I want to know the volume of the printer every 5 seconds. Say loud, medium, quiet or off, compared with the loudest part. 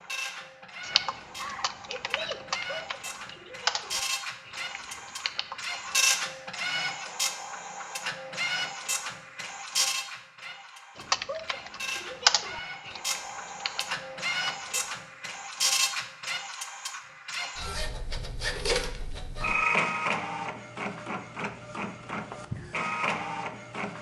medium, loud, medium, loud, loud.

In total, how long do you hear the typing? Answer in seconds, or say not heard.
9 s.